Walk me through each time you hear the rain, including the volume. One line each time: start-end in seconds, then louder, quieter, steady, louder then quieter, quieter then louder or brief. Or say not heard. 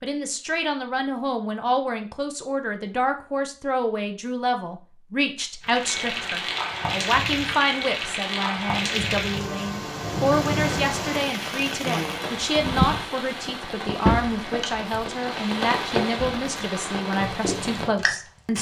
5.6-18.5 steady.